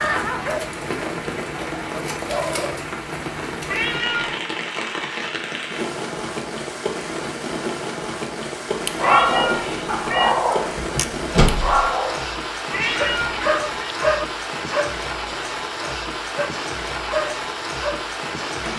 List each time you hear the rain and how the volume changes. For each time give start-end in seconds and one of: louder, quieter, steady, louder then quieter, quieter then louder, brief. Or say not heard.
0.0-18.7 steady.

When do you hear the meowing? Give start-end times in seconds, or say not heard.
3.6-4.4, 9.0-10.4, 12.7-13.9.